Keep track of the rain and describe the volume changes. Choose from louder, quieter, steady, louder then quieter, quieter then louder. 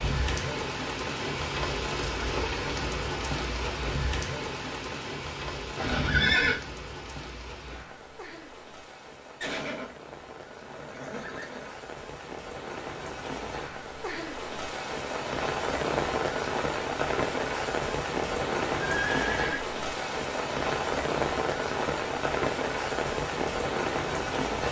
quieter then louder.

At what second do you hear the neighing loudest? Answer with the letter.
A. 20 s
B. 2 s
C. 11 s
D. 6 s
D.